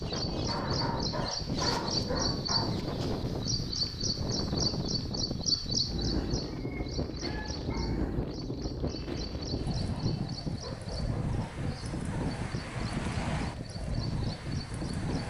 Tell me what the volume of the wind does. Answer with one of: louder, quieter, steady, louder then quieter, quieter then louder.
steady.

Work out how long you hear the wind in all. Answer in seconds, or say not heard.
15 s.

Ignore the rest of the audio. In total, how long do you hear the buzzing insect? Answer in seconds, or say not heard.
not heard.